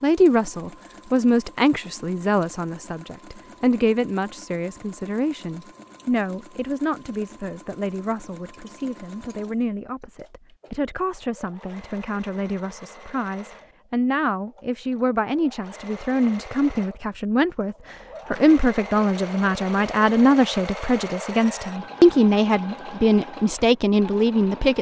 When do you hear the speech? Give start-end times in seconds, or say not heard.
0.0-24.7.